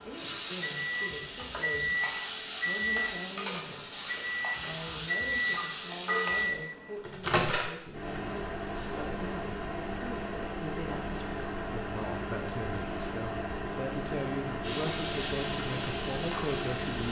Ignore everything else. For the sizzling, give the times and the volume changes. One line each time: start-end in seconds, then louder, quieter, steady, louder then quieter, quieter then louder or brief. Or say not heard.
0.0-6.5 steady
14.6-17.0 brief.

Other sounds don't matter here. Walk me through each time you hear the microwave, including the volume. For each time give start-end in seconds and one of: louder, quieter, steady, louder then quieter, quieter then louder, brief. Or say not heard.
0.0-17.0 steady.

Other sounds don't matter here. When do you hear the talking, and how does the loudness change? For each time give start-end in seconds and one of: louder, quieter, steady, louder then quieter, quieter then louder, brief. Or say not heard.
0.0-17.0 louder.